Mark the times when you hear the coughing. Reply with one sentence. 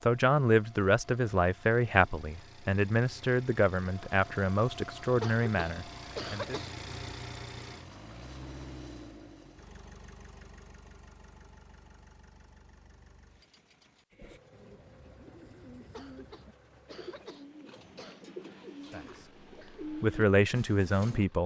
You can hear the coughing from 5.2 to 6.8 s and from 15.9 to 18.2 s.